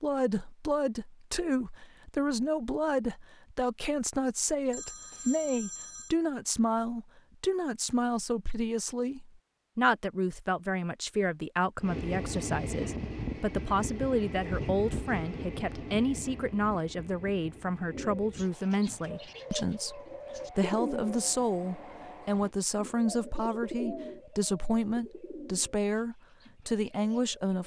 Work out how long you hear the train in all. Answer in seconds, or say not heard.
11 s.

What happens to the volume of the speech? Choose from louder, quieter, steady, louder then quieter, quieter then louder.
steady.